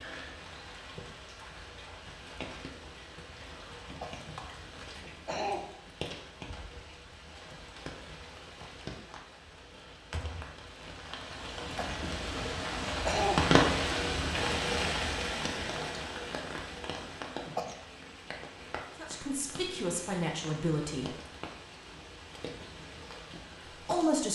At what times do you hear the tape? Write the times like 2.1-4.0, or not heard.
not heard.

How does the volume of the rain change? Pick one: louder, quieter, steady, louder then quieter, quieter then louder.
louder then quieter.